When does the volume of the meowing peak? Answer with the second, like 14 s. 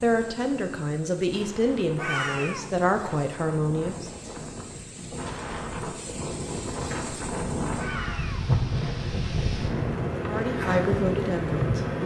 2 s.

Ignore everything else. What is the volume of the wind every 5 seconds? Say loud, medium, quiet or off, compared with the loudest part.
quiet, loud, loud.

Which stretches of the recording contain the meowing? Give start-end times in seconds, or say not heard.
1.9-2.6, 7.8-8.4.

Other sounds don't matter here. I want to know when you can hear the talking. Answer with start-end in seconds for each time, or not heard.
0.0-4.1, 10.2-12.0.